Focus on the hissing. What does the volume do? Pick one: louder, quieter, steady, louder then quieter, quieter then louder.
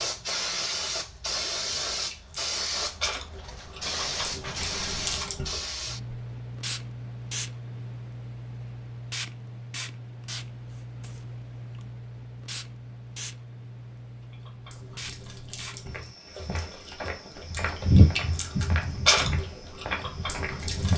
quieter.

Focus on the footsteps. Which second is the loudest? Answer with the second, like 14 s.
18 s.